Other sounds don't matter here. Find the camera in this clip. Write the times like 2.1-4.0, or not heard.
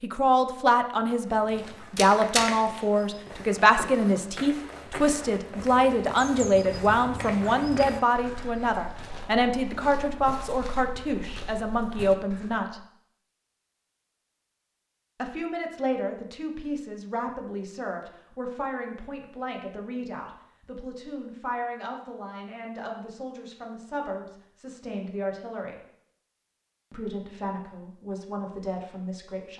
1.9-2.5.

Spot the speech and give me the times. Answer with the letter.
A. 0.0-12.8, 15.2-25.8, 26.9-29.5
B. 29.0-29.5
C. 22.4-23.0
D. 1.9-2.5
A.